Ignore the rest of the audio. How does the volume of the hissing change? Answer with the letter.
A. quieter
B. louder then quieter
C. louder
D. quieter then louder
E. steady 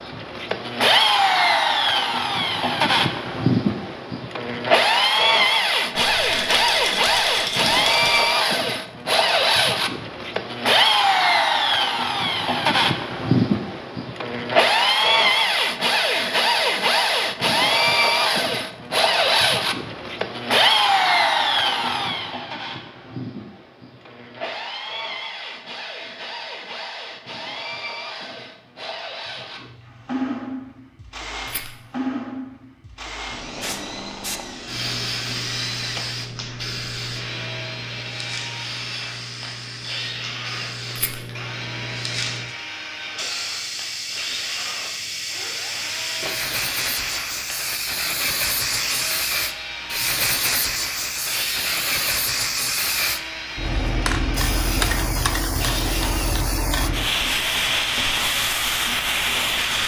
C.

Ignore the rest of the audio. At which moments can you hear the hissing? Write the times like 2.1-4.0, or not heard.
33.6-59.8.